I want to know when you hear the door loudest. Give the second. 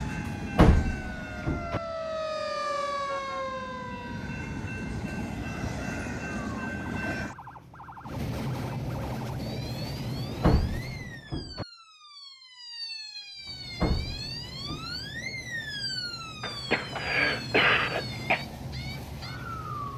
1 s.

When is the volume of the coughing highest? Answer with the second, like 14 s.
18 s.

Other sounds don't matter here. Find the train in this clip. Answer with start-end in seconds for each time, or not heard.
0.0-11.3, 13.3-19.9.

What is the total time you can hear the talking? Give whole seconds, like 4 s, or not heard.
not heard.